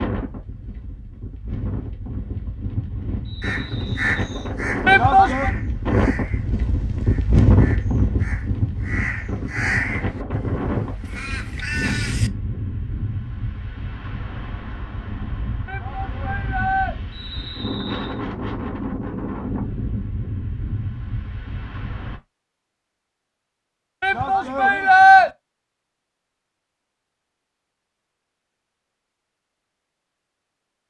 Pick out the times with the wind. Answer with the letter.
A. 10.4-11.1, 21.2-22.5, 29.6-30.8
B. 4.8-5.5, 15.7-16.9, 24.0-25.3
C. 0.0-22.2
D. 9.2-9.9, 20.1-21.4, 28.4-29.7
C.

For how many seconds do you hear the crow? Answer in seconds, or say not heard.
9 s.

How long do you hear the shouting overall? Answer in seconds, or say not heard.
3 s.